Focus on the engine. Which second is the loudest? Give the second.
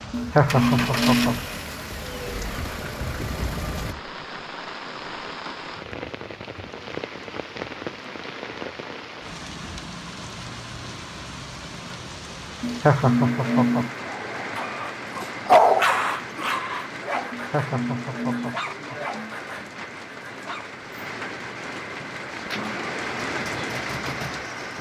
1 s.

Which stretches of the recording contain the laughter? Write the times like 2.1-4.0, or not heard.
0.1-1.4, 12.6-13.9, 17.3-19.4.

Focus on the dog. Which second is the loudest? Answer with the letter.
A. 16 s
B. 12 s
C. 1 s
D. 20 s
A.